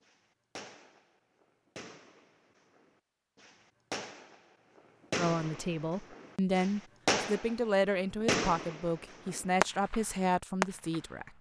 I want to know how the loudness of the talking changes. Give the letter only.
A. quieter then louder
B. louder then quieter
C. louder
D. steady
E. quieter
D.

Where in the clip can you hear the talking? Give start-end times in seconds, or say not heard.
5.2-11.3.